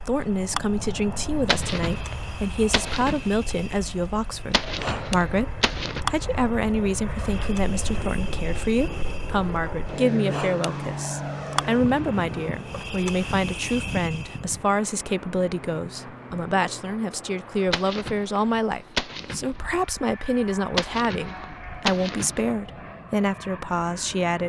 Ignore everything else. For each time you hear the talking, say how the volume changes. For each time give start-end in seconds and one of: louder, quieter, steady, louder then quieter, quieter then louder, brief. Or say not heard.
0.1-24.4 steady.